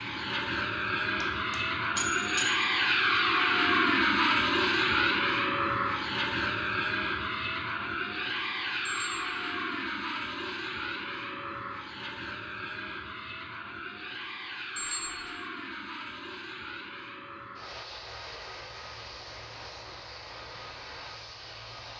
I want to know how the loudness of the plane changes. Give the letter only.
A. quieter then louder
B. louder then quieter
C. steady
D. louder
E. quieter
E.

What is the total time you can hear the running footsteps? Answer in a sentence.
You can't hear the running footsteps here.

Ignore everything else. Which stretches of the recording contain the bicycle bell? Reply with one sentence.
The bicycle bell can be heard from 1.2 to 2.6 s, from 8.8 to 9.3 s and from 14.8 to 15.3 s.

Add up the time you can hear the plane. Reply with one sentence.
You can hear the plane for 22 seconds altogether.